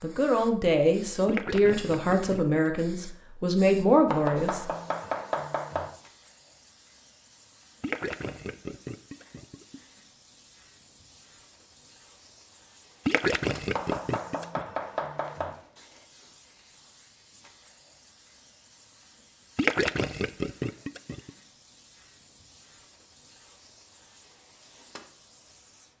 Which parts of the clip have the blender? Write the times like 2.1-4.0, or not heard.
not heard.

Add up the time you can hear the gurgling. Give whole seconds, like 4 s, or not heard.
7 s.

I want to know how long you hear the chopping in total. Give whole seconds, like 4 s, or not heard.
4 s.